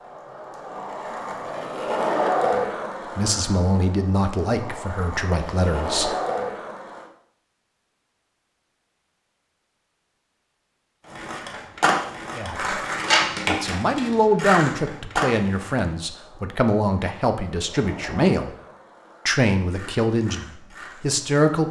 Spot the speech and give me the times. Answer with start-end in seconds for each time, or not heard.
3.1-6.1, 12.3-12.8, 13.4-18.5, 19.2-21.6.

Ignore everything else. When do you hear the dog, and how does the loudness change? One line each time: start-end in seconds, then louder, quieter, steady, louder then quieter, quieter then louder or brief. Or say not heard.
not heard.